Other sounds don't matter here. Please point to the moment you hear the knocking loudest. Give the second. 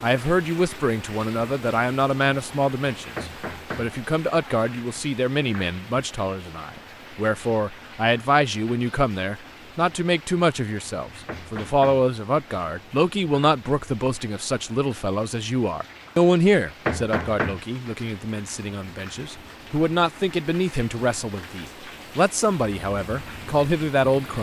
17 s.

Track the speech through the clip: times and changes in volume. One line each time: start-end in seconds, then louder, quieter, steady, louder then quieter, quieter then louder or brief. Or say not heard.
0.0-24.3 steady.